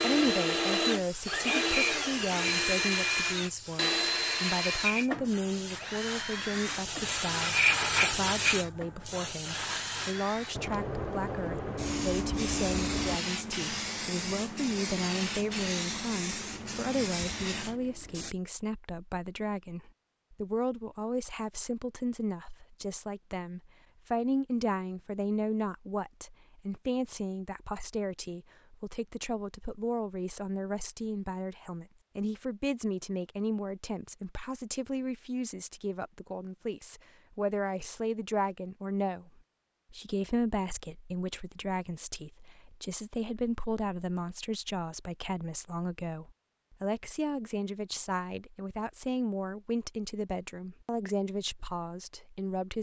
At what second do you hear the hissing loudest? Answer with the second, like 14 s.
8 s.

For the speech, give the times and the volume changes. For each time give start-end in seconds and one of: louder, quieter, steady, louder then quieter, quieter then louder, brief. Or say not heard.
0.0-52.7 steady.